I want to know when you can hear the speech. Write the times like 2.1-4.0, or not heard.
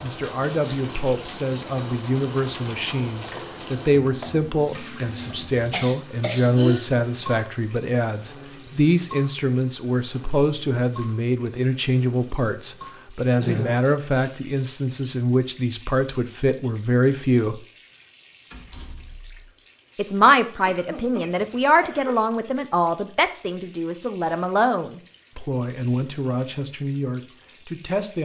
0.0-17.6, 19.9-28.2.